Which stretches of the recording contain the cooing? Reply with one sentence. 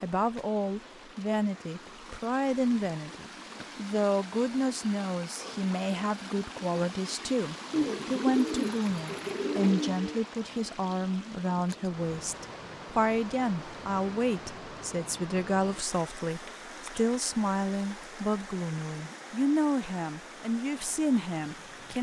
The cooing can be heard from 7.7 to 10.2 s.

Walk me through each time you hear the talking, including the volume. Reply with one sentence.
The talking can be heard from 0.0 to 21.9 s, at a steady volume.